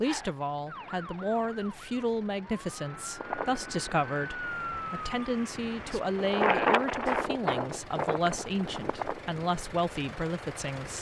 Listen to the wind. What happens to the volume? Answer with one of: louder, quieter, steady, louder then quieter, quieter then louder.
louder then quieter.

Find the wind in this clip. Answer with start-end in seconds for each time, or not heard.
3.2-10.9.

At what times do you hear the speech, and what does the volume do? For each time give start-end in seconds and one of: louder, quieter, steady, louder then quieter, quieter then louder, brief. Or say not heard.
0.0-10.9 steady.